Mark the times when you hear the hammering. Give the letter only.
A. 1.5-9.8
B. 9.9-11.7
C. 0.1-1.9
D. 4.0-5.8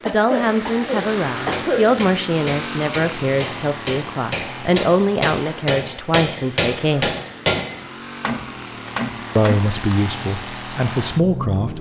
A.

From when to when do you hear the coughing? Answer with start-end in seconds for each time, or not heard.
0.1-1.9.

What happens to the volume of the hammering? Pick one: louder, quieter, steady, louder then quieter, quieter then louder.
louder then quieter.